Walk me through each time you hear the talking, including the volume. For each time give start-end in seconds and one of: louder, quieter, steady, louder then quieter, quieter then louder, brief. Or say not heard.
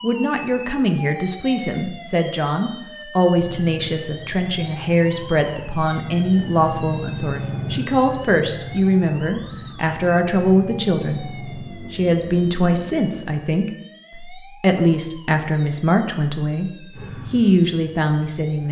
0.0-16.7 steady
17.3-18.6 brief.